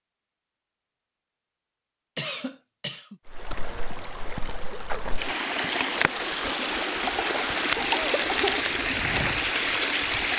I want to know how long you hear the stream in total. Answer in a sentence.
You can hear the stream for 7 seconds altogether.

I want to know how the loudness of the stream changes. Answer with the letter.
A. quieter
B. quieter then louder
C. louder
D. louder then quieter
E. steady
C.